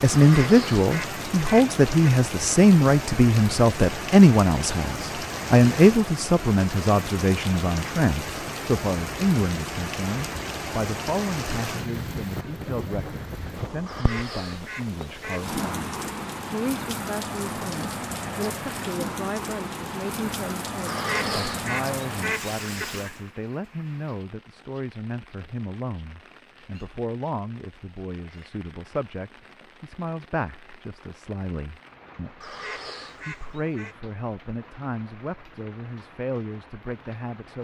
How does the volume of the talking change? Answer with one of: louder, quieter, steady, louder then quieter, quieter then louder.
quieter.